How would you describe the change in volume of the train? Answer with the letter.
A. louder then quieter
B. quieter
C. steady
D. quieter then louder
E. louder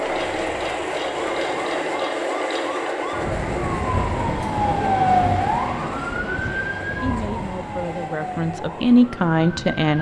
B.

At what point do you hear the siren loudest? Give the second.
5 s.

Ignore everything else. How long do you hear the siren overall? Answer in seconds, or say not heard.
10 s.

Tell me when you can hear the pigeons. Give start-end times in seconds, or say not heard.
not heard.